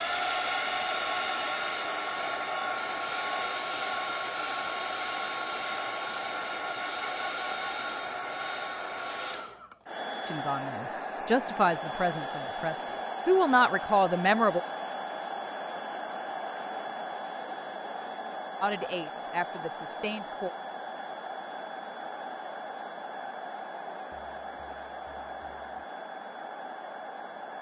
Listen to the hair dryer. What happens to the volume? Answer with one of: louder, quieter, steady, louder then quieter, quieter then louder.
quieter.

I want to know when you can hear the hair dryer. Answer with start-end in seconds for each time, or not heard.
0.0-27.5.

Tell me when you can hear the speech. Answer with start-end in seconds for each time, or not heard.
10.2-14.6, 18.6-20.5.